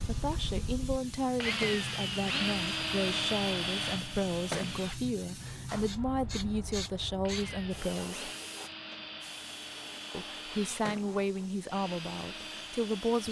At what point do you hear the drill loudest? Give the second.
3 s.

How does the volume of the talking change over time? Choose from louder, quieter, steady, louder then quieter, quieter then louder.
steady.